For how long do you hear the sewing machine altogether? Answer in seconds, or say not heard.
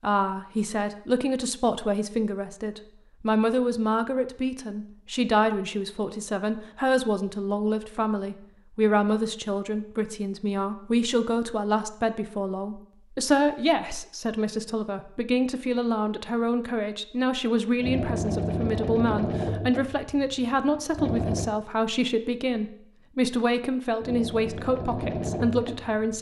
6 s.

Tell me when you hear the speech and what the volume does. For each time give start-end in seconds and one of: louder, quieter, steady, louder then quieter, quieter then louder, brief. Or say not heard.
0.0-26.1 steady.